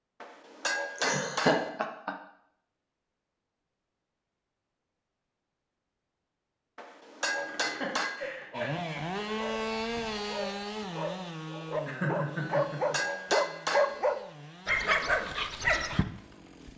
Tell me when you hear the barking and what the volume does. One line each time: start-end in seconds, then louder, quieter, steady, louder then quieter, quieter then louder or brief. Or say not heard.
8.2-16.1 louder.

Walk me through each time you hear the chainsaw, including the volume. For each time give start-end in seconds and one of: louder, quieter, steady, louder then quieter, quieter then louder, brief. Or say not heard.
8.5-16.7 quieter.